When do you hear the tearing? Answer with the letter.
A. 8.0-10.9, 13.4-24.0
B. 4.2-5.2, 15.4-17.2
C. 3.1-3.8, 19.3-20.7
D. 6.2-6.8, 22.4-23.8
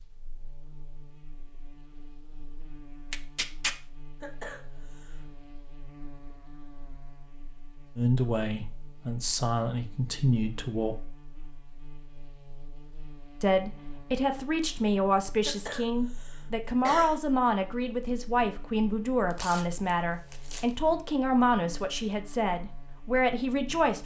C.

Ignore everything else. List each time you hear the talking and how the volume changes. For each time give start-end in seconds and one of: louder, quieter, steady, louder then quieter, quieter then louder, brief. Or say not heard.
8.0-10.9 brief
13.4-24.0 steady.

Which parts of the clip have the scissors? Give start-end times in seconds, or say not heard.
not heard.